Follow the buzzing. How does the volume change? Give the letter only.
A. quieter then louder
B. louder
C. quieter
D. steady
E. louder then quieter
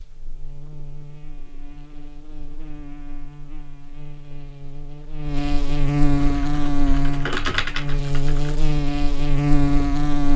B.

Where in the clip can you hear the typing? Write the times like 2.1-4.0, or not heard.
6.2-8.6.